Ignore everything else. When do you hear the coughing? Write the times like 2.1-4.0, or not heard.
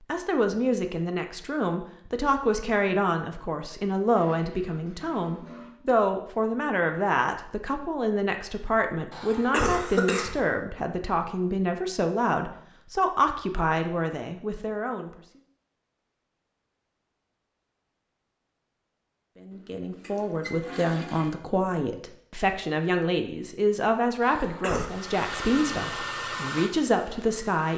9.1-10.4, 24.2-24.9.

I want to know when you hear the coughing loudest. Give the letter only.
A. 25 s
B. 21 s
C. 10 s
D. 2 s
C.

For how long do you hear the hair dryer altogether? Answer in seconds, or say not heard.
3 s.